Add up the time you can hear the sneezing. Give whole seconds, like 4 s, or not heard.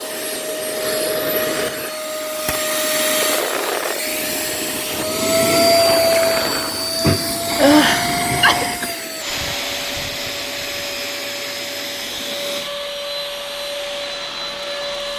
2 s.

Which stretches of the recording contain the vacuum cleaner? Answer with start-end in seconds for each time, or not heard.
0.0-15.1.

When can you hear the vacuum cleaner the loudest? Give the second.
6 s.